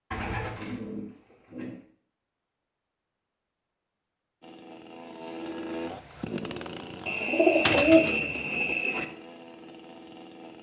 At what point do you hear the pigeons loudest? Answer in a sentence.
The volume of the pigeons peaks at 8 seconds.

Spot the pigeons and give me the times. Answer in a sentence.
You can hear the pigeons from 0.1 to 1.8 s and from 7.0 to 9.1 s.